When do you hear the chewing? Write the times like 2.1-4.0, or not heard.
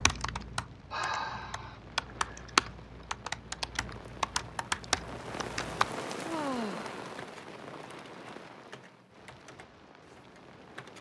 not heard.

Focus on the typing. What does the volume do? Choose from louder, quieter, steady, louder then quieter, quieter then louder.
louder then quieter.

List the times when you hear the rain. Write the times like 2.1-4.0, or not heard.
0.0-10.9.